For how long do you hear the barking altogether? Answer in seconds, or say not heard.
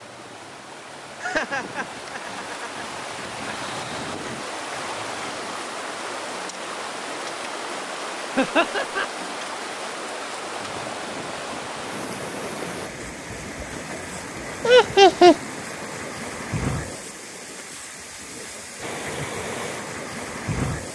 not heard.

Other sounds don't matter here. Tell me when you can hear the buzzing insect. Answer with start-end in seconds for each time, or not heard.
not heard.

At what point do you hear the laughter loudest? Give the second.
15 s.